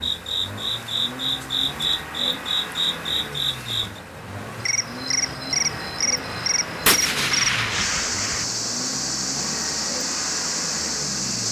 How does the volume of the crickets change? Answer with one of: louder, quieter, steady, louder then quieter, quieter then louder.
steady.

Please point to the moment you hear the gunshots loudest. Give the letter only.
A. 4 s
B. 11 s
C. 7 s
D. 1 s
C.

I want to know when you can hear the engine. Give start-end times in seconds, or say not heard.
0.0-11.4.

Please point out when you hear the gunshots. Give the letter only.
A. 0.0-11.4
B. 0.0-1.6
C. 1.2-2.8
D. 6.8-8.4
D.